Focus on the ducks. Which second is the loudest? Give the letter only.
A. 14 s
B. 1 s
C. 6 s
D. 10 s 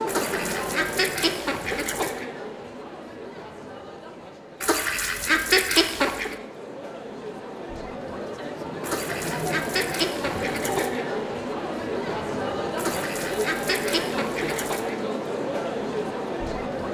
C.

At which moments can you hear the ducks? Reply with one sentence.
The ducks can be heard from 0.1 to 2.2 s, from 4.6 to 6.3 s, from 8.8 to 11.1 s and from 12.8 to 14.9 s.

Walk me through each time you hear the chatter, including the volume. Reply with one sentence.
The chatter can be heard from 0.0 to 16.8 s, getting quieter then louder.